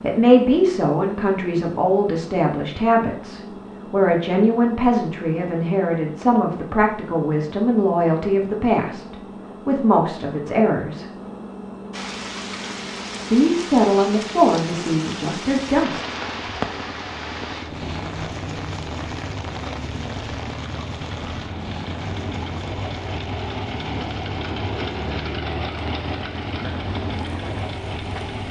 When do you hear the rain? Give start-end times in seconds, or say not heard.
11.9-28.4.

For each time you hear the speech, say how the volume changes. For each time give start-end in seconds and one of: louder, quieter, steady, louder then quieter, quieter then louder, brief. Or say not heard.
0.0-11.1 steady
13.3-16.1 brief.